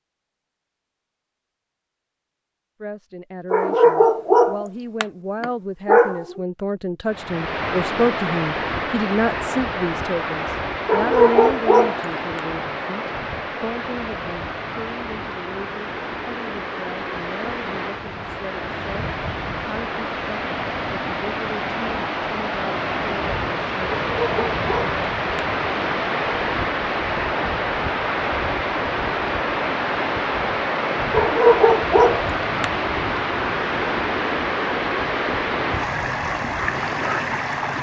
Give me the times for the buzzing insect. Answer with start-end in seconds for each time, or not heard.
not heard.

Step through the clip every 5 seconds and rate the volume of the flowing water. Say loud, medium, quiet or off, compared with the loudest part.
off, loud, medium, medium, loud, loud, loud, loud.